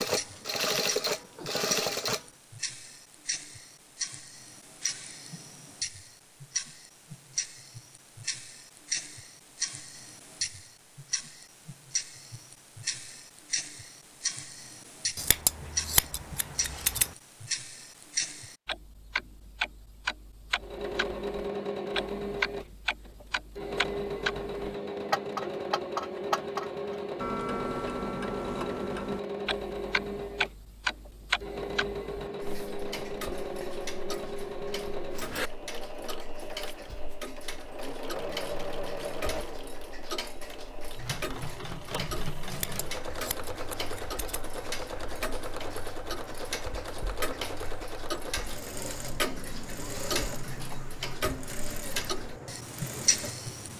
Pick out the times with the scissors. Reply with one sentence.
You can hear the scissors from 15.2 to 17.1 s and from 42.5 to 44.5 s.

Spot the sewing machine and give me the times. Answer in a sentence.
The sewing machine can be heard from 0.0 to 2.2 s and from 20.6 to 53.7 s.